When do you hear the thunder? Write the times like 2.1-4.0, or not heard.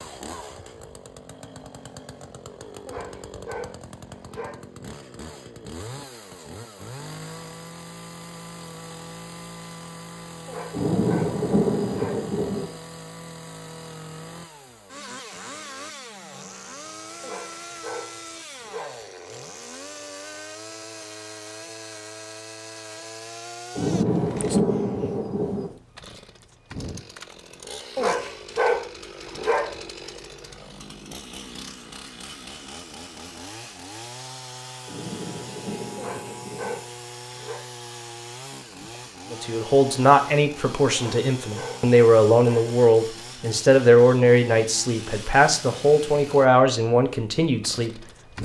10.7-12.7, 23.8-25.7, 34.9-36.8.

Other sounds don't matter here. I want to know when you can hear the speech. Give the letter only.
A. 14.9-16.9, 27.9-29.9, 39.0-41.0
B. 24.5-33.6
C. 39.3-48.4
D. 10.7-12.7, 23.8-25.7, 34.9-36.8
C.